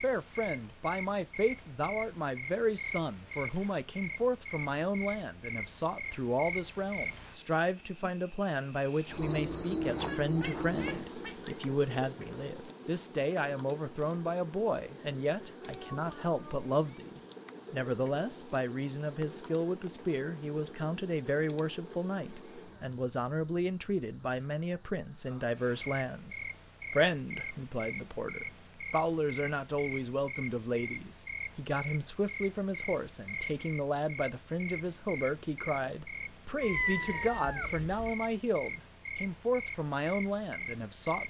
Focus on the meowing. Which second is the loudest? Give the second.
37 s.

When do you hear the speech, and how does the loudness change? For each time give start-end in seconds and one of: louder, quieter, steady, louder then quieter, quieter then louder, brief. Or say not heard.
0.0-41.2 steady.